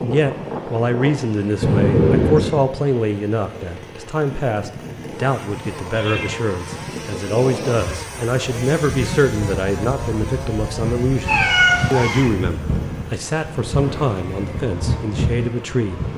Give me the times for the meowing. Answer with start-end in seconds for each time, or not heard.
1.6-2.5, 5.8-6.4, 11.2-12.3.